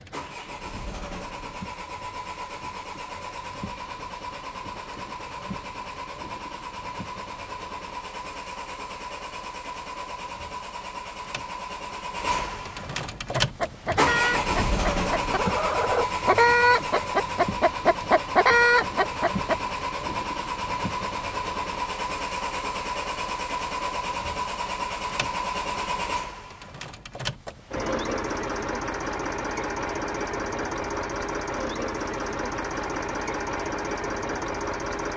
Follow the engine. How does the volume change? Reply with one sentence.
The volume of the engine goes up.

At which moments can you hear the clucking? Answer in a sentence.
The clucking can be heard from 13.3 to 19.6 s.